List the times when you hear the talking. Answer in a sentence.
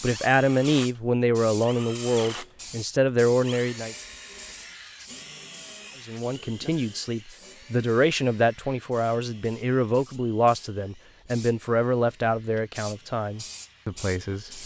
You can hear the talking from 0.0 to 4.0 s and from 6.0 to 14.6 s.